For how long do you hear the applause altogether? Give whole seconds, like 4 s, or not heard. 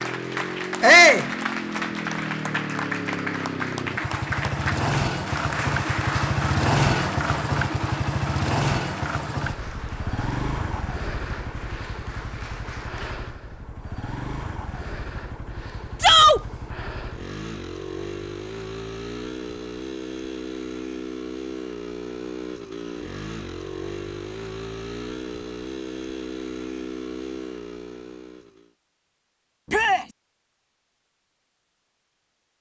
13 s.